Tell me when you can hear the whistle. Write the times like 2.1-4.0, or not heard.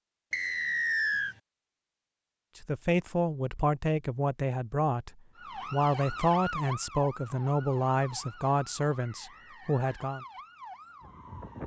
0.3-1.4, 9.1-9.8.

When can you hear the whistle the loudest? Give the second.
1 s.